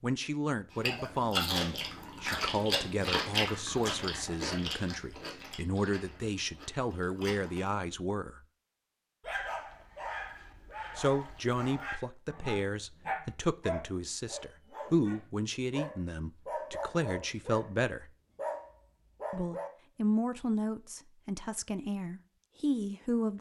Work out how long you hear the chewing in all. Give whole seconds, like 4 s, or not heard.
7 s.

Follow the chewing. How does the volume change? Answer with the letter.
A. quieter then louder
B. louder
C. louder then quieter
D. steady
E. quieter
E.